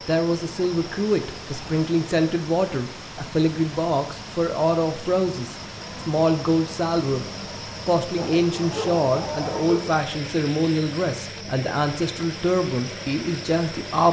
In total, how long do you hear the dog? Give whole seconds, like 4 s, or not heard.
2 s.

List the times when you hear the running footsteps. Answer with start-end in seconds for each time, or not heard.
not heard.